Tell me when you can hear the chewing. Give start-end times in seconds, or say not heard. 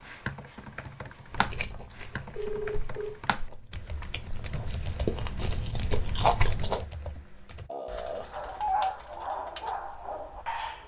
1.3-6.8.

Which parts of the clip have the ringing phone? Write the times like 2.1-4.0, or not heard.
1.7-3.1, 7.7-8.9.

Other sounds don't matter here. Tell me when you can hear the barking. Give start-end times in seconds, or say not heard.
8.3-10.8.